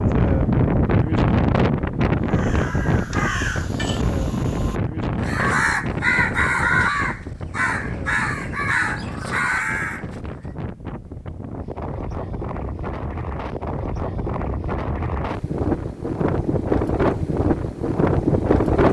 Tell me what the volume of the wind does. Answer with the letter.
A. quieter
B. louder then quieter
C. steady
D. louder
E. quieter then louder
E.